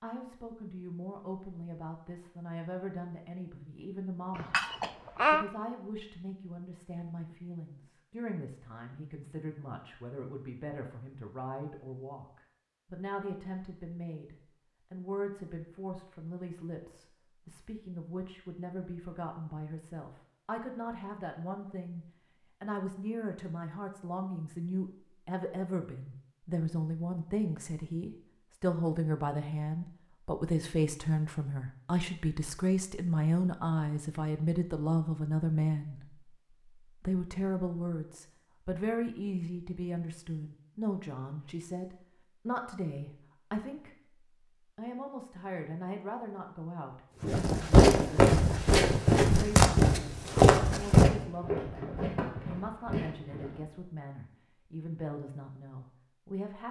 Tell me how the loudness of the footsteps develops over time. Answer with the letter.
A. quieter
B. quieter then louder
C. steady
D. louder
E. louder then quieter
A.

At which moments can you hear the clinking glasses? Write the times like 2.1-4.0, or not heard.
4.3-5.5.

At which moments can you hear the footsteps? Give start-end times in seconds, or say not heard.
47.2-53.6.